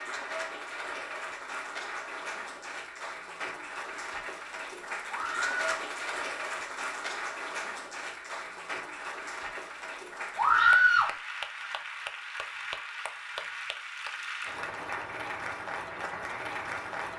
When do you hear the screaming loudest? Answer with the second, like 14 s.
11 s.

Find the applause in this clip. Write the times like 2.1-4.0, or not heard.
0.0-17.1.